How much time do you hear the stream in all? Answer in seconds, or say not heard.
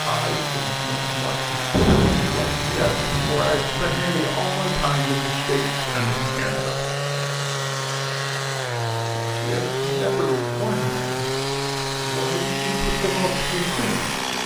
not heard.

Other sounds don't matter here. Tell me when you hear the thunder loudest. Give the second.
2 s.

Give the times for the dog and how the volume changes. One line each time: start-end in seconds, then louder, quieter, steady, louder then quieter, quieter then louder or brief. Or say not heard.
not heard.